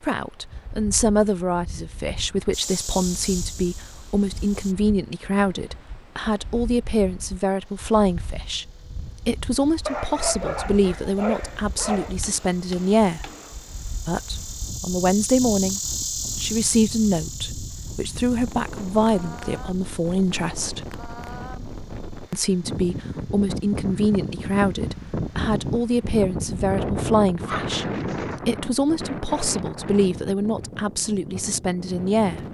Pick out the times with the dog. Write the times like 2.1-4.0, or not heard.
9.8-12.2, 27.4-28.2.